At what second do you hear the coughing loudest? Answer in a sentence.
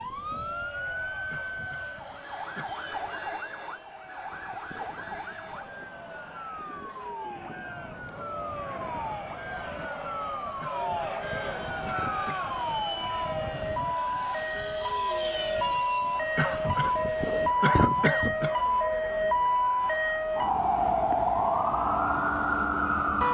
The loudest moment of the coughing is at 18 seconds.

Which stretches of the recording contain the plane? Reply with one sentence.
You can hear the plane from 0.0 to 17.6 s.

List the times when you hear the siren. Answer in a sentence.
You can hear the siren from 0.0 to 23.2 s.